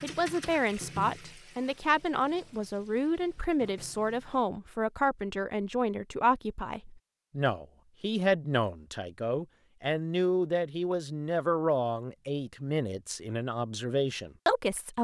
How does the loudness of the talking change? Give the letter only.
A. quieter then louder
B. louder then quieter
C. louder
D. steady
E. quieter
D.